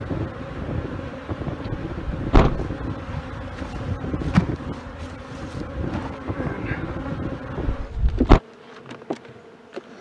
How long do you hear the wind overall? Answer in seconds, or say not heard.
8 s.